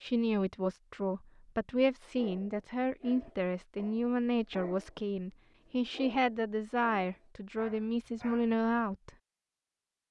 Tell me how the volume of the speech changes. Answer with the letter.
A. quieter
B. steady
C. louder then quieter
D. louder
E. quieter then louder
B.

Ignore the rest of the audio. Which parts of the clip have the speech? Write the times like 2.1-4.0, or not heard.
0.0-9.1.